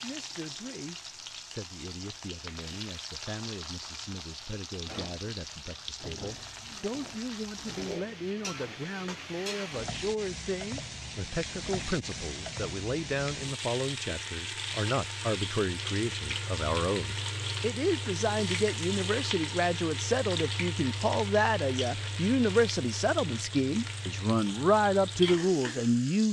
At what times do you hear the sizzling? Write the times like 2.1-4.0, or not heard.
0.0-26.2.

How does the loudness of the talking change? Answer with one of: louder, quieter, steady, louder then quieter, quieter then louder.
louder.